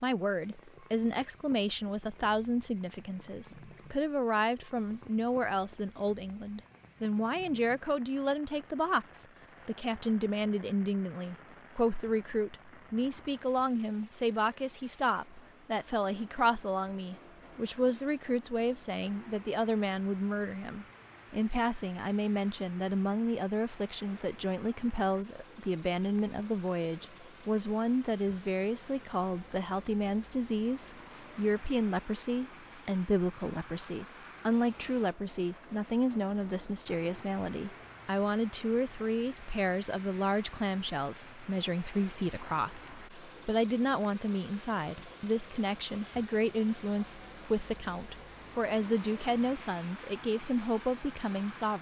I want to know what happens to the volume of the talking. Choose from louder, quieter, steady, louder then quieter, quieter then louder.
steady.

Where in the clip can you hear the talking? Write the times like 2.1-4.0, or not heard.
0.0-51.7.